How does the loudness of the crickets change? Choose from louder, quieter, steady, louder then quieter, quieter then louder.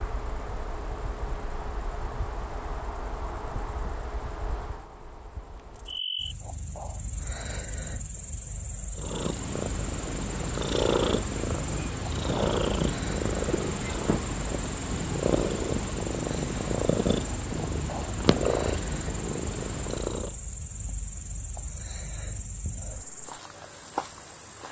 steady.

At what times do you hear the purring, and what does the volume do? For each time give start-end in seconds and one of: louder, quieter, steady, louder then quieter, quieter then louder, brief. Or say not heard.
8.9-20.4 steady.